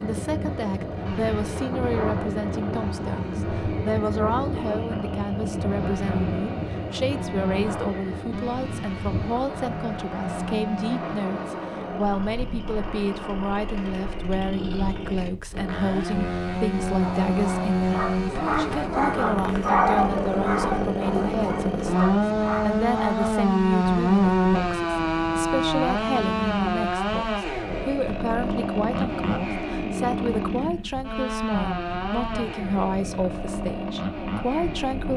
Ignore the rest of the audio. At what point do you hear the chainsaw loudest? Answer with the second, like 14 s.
24 s.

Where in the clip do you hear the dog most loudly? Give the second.
20 s.